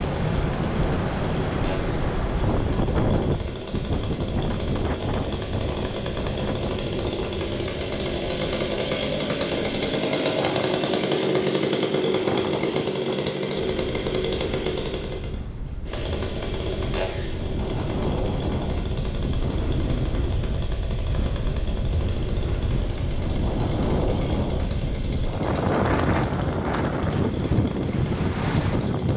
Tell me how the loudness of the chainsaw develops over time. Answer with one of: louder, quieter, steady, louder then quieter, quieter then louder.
louder then quieter.